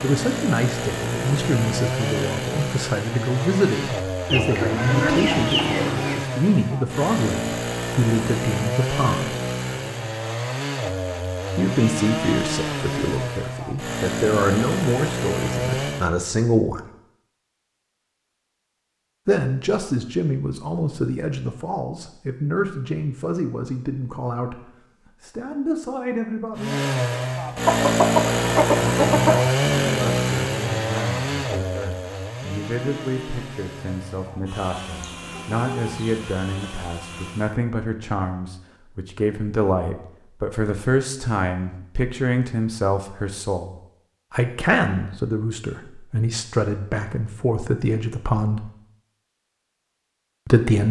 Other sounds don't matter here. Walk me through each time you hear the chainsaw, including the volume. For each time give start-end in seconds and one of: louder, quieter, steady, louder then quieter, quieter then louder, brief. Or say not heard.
0.0-16.1 steady
26.6-37.6 quieter.